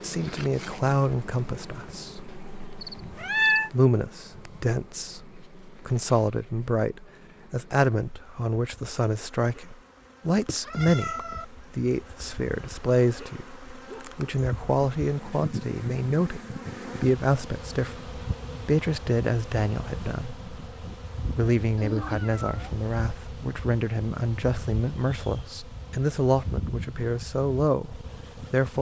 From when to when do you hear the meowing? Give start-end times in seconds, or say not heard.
2.3-3.7, 10.3-11.4, 21.8-22.8.